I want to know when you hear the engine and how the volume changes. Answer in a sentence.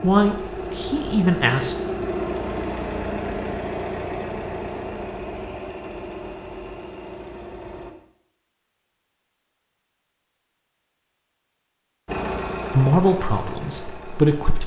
The engine can be heard from 0.0 to 8.0 s, getting quieter; and briefly from 12.1 to 14.6 s.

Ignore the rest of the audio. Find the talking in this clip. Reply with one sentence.
You can hear the talking from 0.0 to 1.8 s and from 12.7 to 14.6 s.